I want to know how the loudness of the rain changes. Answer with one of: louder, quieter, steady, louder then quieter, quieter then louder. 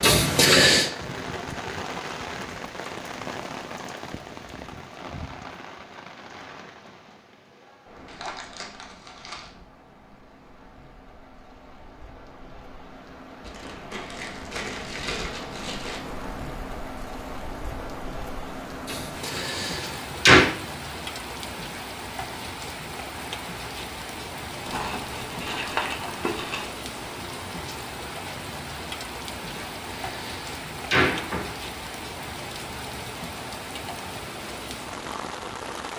quieter then louder.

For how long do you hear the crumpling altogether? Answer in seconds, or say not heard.
6 s.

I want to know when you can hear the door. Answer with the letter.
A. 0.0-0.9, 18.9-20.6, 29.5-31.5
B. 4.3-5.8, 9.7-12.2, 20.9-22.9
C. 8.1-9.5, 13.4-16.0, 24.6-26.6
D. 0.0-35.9
A.